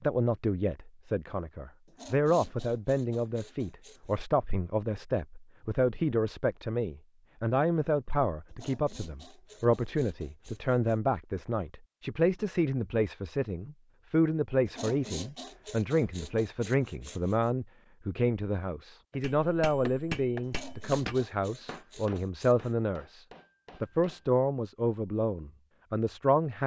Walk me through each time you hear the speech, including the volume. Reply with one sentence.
The speech can be heard from 0.0 to 26.6 s, at a steady volume.